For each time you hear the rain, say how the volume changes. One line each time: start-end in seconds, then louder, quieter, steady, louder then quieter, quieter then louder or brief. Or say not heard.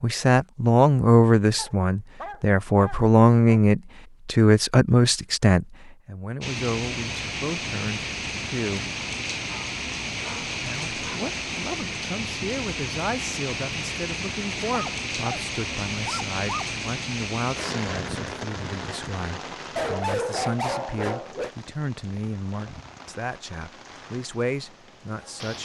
6.4-25.6 quieter.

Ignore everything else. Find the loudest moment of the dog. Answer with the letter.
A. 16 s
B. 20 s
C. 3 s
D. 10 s
B.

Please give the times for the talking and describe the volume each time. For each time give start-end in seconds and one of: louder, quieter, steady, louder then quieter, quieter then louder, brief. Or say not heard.
0.0-8.9 quieter
10.6-25.6 steady.